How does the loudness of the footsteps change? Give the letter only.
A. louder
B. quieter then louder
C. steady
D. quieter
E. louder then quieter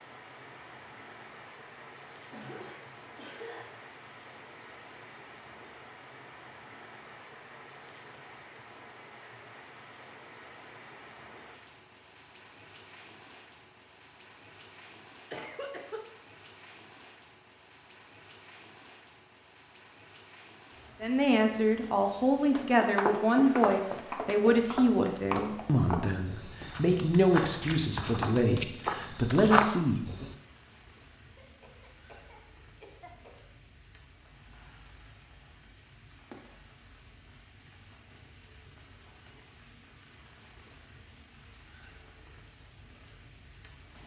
B.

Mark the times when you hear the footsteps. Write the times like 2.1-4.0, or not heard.
22.5-30.4.